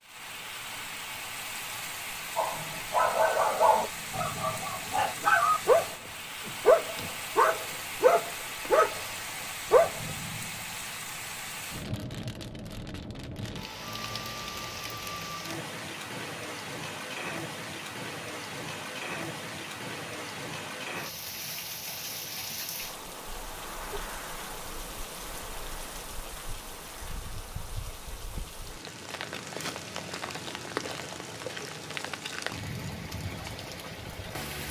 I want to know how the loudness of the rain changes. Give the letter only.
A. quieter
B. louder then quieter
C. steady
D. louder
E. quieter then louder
C.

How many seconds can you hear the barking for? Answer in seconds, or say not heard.
8 s.